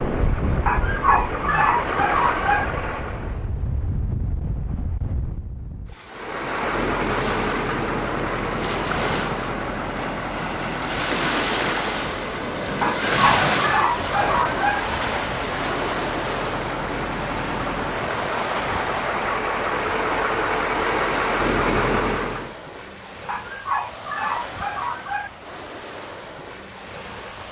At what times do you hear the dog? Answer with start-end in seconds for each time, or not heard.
0.7-2.6, 12.8-14.8, 23.2-25.3.